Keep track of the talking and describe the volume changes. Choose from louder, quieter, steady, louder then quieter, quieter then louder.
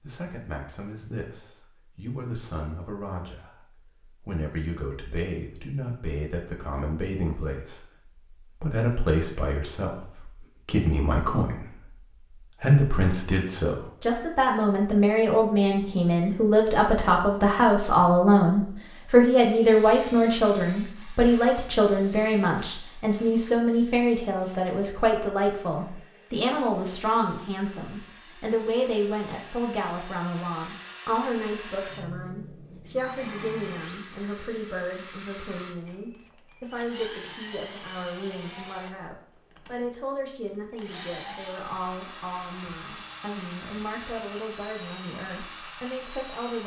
louder then quieter.